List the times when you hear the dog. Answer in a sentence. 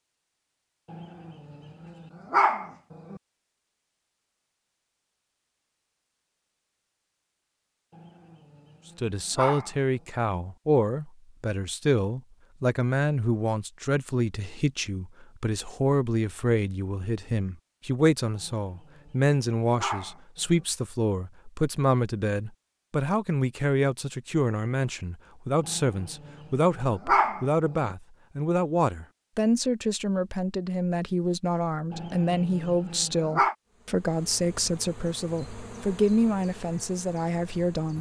You can hear the dog from 0.9 to 3.2 s, from 7.9 to 9.8 s, from 18.4 to 20.6 s, from 25.6 to 27.9 s and from 31.9 to 33.5 s.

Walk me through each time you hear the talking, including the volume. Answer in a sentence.
The talking can be heard from 8.9 to 37.9 s, at a steady volume.